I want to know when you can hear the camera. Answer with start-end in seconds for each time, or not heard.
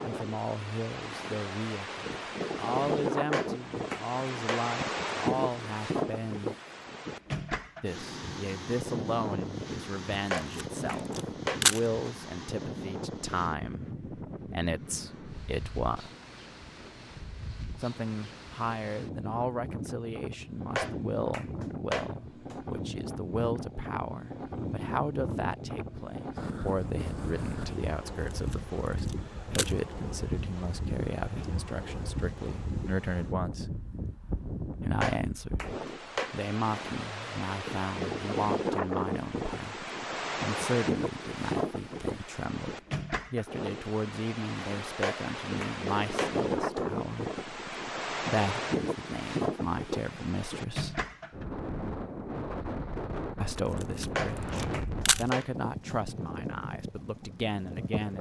10.3-11.8, 28.1-29.8, 53.5-55.2.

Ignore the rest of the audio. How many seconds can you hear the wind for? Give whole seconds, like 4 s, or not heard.
58 s.